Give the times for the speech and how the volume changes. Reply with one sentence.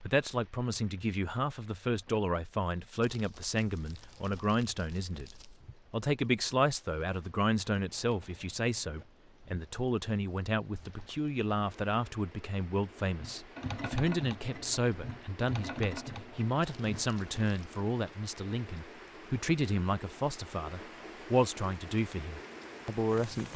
The speech can be heard from 0.0 to 23.5 s, at a steady volume.